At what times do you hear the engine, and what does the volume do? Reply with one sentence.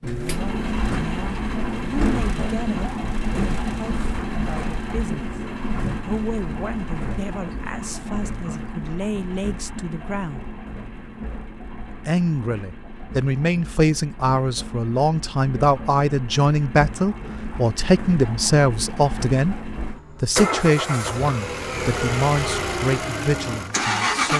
The engine can be heard from 0.0 to 24.3 s, getting quieter then louder.